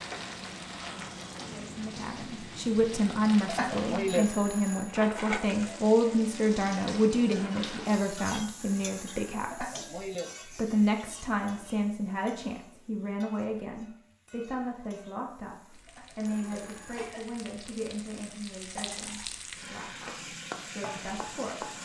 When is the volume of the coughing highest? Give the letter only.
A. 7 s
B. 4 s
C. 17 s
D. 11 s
B.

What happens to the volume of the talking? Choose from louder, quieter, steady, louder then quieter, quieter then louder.
quieter.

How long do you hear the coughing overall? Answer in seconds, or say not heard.
3 s.